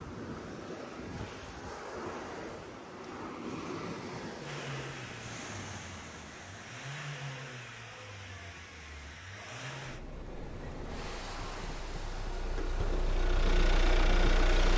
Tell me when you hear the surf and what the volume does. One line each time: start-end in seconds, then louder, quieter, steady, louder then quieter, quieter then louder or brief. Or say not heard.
0.0-14.5 quieter then louder.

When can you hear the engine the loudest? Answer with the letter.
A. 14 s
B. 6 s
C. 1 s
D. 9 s
A.